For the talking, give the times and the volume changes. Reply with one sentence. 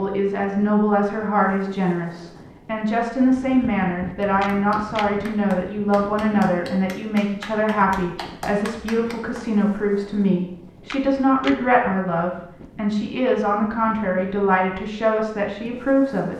The talking can be heard from 0.0 to 16.3 s, at a steady volume.